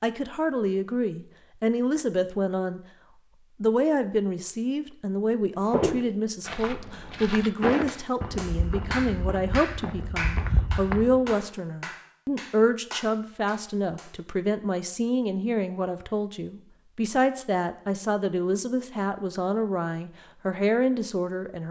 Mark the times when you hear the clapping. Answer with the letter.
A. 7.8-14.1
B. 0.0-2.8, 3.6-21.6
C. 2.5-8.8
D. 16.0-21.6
A.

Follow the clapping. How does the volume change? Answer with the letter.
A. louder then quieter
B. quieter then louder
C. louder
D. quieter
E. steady
D.